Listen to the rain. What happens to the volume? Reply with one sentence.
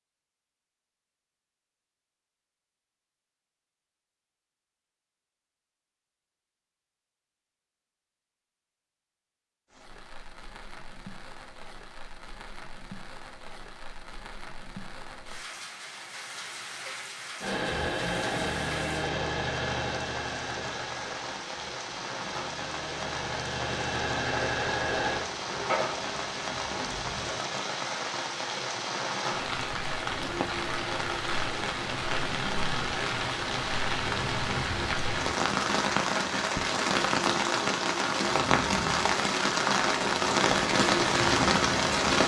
The loudness of the rain goes up.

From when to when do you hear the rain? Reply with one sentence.
You can hear the rain from 9.7 to 42.2 s.